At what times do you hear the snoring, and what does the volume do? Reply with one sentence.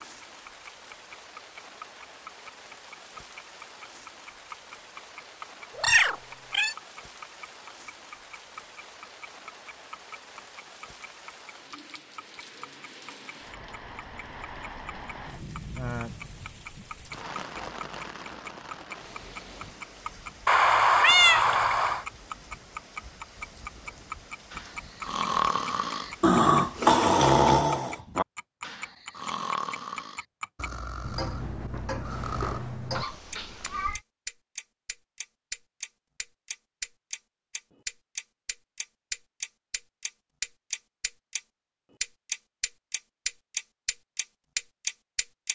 You can hear the snoring from 24.5 to 32.6 s, getting louder then quieter.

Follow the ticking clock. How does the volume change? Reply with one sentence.
The volume of the ticking clock goes up.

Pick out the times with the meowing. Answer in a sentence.
You can hear the meowing from 5.8 to 6.8 s, from 20.4 to 22.1 s and from 33.0 to 34.0 s.